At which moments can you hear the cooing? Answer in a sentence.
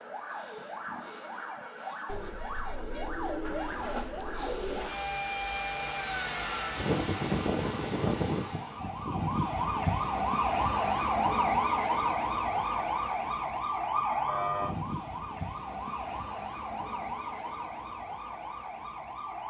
The cooing can be heard from 2.0 to 5.0 s.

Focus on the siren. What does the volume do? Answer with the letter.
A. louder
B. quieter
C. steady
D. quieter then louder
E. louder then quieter
E.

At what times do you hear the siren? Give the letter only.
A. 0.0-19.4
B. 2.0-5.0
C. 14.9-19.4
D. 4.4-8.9
A.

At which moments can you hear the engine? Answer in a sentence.
The engine can be heard from 4.4 to 8.9 s.